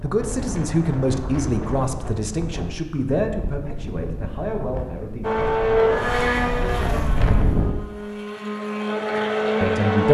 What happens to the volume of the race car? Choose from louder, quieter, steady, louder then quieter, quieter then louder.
quieter then louder.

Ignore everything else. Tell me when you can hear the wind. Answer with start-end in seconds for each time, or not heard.
0.0-7.8.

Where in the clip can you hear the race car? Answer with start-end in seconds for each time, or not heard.
5.2-10.0.